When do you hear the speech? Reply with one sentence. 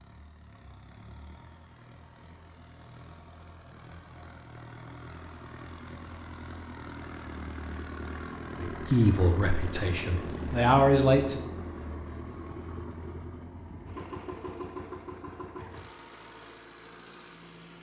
You can hear the speech from 8.6 to 11.4 s.